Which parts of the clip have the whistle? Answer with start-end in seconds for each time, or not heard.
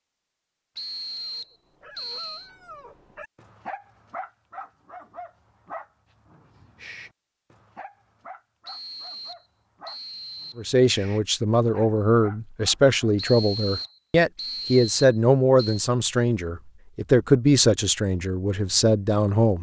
0.8-2.5, 8.7-10.7, 13.2-15.9.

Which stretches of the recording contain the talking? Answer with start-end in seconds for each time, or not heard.
10.6-19.5.